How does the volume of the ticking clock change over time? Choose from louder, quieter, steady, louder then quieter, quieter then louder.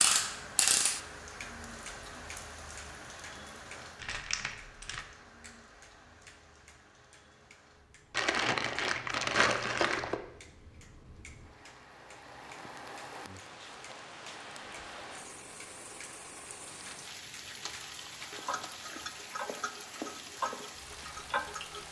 quieter then louder.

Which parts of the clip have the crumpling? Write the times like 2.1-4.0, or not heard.
4.0-5.0, 8.1-10.2, 16.6-18.9.